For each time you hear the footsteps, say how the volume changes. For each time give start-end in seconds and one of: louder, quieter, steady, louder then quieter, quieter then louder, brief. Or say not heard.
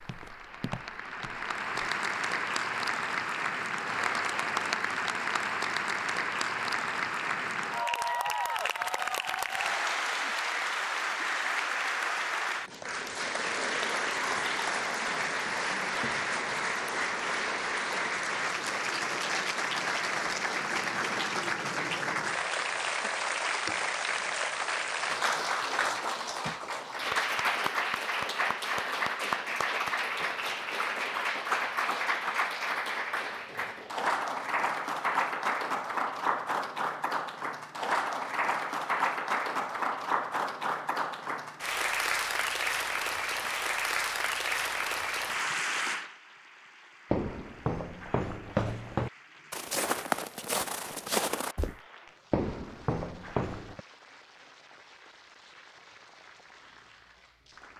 0.0-1.9 brief
47.1-53.8 steady.